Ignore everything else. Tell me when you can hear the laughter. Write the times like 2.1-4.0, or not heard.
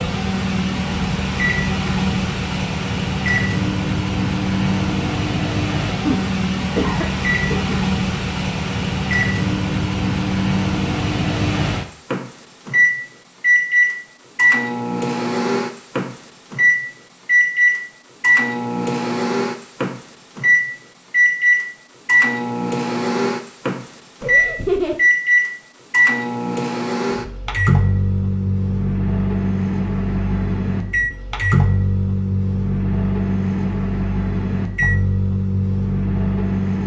6.0-7.8, 24.2-25.0.